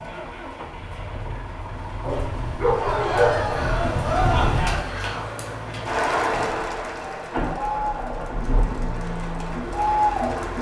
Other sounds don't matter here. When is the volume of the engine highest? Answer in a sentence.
The volume of the engine peaks at 8 seconds.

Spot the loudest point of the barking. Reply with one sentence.
The loudest moment of the barking is at 3 seconds.